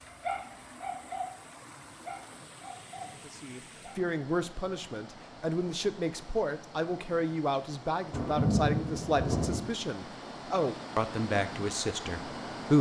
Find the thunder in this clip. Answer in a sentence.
The thunder can be heard from 8.1 to 9.6 s.